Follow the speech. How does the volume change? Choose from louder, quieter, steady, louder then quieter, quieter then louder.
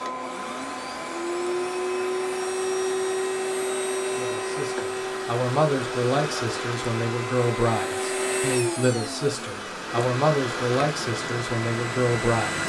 steady.